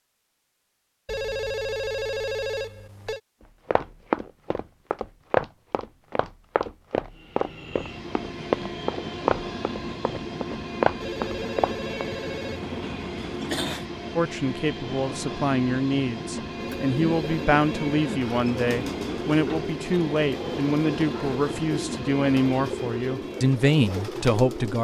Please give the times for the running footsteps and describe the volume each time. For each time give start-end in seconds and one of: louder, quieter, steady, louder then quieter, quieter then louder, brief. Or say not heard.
3.6-12.1 quieter then louder.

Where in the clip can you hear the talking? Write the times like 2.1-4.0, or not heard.
14.2-24.7.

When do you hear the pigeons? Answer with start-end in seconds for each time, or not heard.
16.6-24.7.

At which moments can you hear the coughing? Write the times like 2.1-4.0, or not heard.
13.2-13.8.